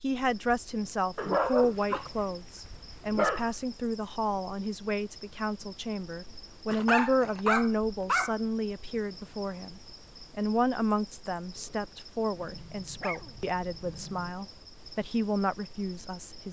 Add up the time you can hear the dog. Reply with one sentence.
You can hear the dog for 6 seconds altogether.